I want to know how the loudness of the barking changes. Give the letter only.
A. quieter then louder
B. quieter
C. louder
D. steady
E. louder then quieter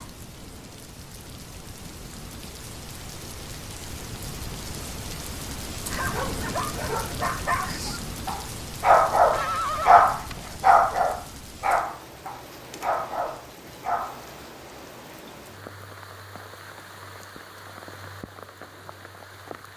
E.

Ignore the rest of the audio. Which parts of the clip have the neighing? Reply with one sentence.
The neighing can be heard from 9.3 to 10.6 s.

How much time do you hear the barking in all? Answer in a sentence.
The barking can be heard for 8 seconds in total.